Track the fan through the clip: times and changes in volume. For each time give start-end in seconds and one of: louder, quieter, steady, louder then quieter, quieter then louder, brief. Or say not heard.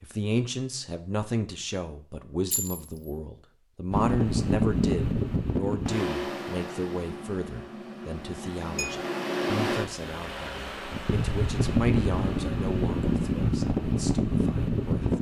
3.9-15.1 quieter then louder.